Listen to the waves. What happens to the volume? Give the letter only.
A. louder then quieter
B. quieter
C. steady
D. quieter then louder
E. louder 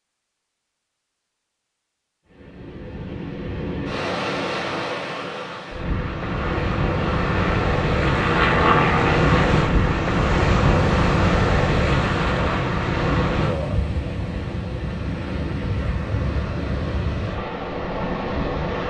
A.